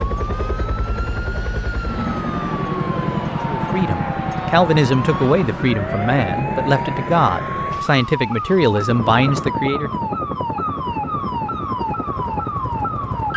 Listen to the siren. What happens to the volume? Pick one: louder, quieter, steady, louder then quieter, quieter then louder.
louder.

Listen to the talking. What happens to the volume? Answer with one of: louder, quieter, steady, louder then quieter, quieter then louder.
steady.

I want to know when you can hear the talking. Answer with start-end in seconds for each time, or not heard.
3.5-10.0.